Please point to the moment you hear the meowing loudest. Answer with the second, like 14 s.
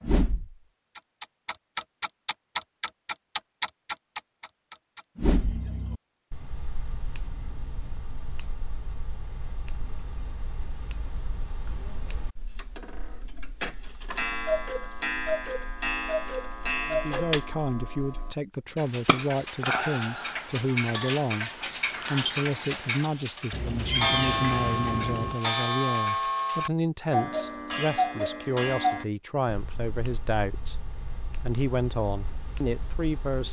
24 s.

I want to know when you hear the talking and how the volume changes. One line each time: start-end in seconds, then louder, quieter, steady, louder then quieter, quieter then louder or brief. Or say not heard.
16.9-33.4 steady.